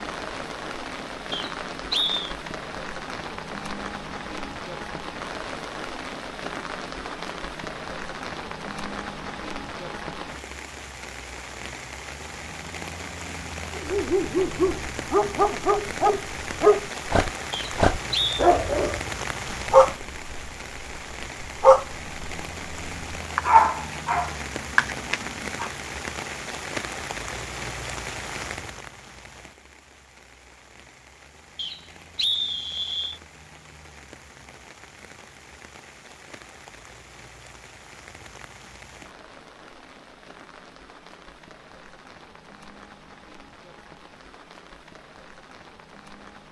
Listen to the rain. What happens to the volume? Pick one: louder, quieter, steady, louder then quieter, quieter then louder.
quieter.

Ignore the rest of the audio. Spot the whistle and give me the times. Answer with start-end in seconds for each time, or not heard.
1.3-2.3, 17.5-18.4, 31.6-33.2.